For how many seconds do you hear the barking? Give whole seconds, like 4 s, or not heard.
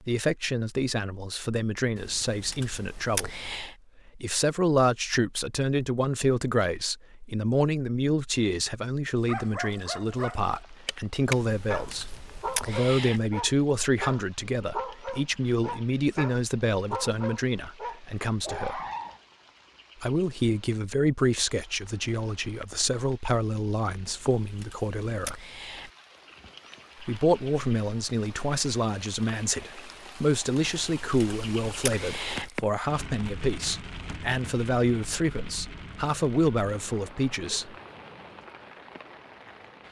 10 s.